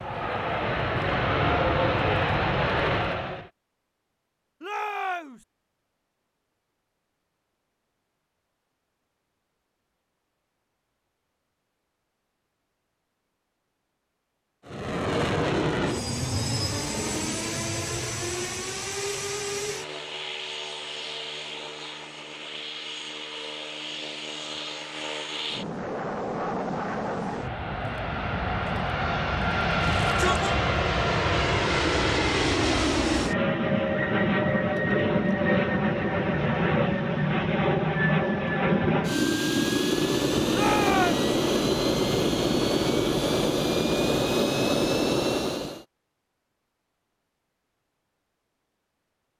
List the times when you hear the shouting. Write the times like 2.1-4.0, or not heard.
4.6-5.5, 29.8-30.6, 40.5-41.2.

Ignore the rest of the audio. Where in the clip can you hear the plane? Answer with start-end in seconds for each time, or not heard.
0.0-3.5, 14.7-45.9.